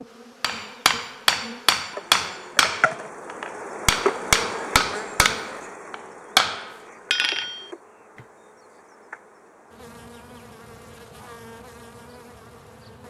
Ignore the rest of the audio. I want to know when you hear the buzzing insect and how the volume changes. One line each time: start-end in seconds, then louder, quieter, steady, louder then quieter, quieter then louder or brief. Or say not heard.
0.0-13.0 louder then quieter.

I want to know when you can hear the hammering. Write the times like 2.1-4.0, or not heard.
0.4-7.7.